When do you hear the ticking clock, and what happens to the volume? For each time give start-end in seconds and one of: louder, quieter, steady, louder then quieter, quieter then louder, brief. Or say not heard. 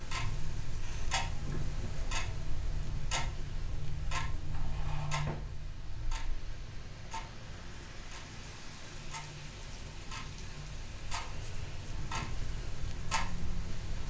0.0-14.0 quieter then louder.